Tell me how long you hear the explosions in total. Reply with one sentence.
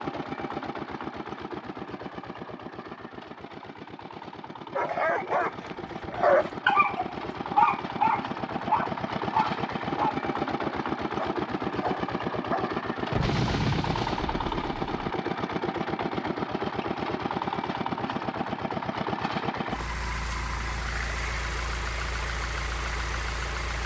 You can hear the explosions for 2 seconds altogether.